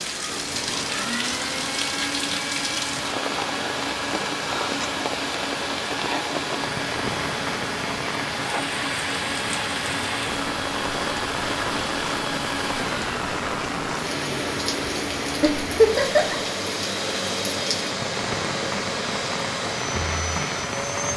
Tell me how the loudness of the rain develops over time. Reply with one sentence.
The volume of the rain stays about the same.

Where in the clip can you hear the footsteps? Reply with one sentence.
You can't hear the footsteps here.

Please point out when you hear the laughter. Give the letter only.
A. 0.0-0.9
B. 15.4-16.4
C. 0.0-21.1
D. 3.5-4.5
B.